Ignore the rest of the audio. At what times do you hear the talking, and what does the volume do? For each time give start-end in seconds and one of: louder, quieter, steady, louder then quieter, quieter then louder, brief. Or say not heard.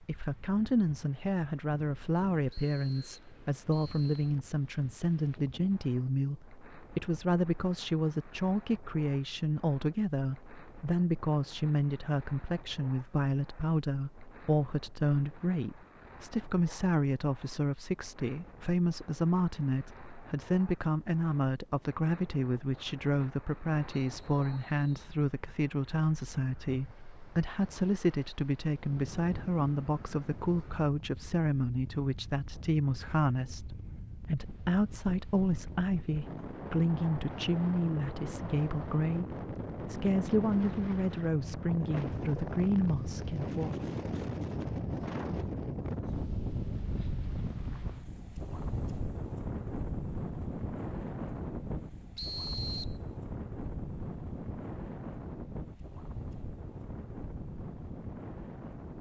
0.0-43.8 steady.